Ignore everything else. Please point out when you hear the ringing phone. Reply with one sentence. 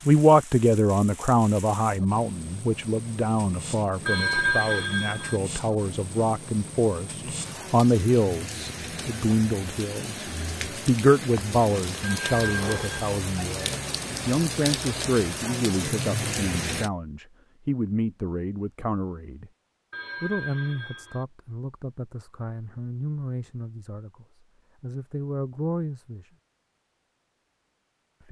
You can hear the ringing phone from 4.0 to 5.4 s, from 12.0 to 13.1 s and from 19.9 to 21.2 s.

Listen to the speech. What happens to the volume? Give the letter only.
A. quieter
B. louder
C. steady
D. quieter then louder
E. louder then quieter
A.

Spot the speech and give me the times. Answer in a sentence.
The speech can be heard from 0.1 to 10.2 s, from 10.8 to 19.5 s and from 20.2 to 26.3 s.